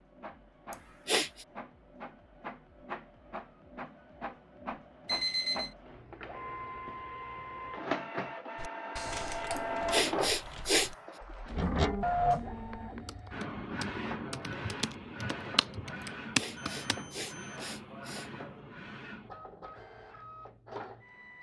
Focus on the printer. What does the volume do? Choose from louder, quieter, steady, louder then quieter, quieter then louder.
louder then quieter.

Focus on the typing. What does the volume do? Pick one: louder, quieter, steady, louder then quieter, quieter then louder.
quieter then louder.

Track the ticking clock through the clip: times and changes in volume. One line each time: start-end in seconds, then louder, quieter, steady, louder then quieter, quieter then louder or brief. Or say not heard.
not heard.